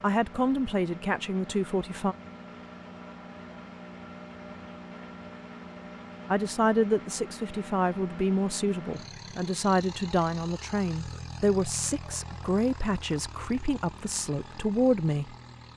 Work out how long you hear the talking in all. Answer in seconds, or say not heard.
11 s.